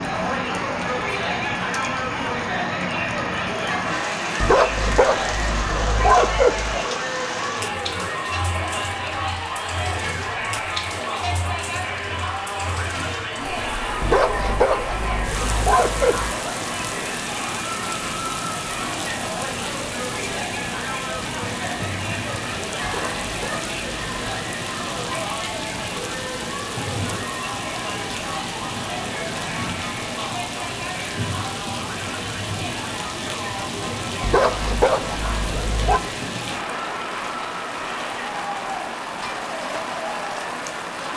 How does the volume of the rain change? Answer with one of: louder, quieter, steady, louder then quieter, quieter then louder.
steady.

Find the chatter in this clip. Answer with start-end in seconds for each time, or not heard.
0.0-40.9.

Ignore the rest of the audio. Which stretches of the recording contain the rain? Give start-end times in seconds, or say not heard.
0.0-41.1.